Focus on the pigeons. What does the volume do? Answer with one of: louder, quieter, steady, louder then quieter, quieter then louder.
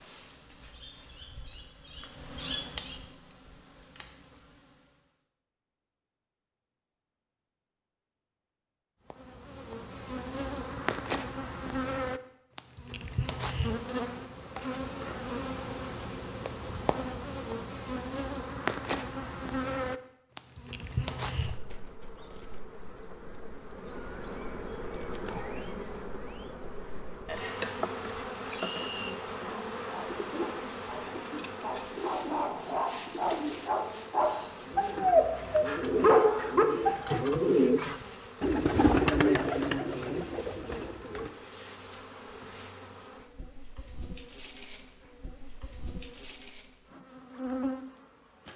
louder.